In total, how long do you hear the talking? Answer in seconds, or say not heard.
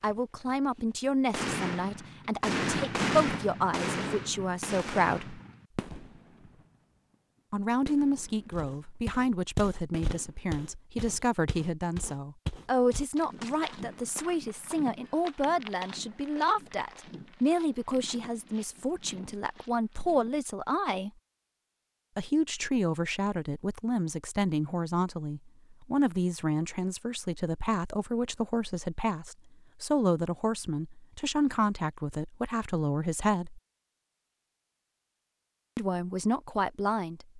32 s.